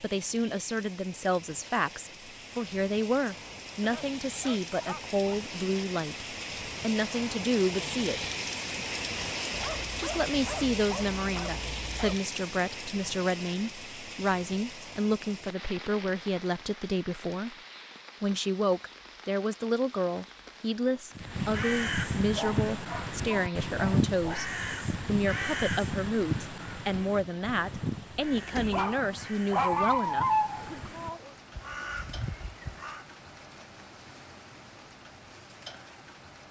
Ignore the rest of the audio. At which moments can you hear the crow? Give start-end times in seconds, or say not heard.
21.1-33.0.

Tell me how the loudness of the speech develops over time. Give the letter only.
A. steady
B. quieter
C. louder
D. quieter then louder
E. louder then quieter
A.